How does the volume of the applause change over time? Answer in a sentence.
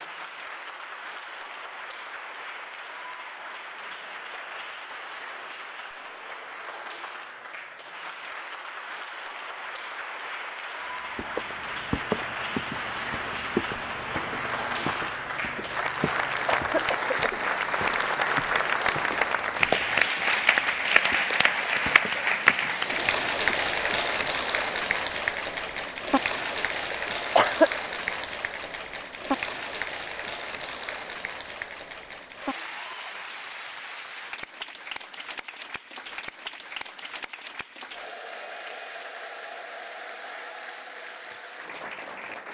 The volume of the applause goes up, then down.